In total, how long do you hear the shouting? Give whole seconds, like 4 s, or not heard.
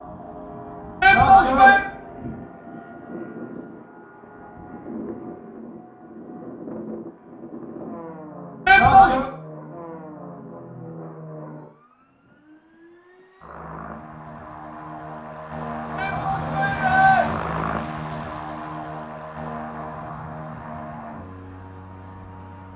3 s.